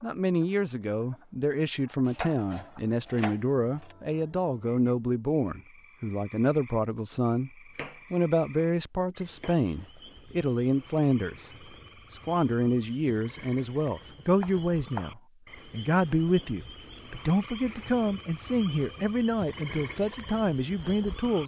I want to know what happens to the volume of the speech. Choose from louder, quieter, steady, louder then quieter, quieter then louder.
steady.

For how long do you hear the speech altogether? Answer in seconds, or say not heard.
20 s.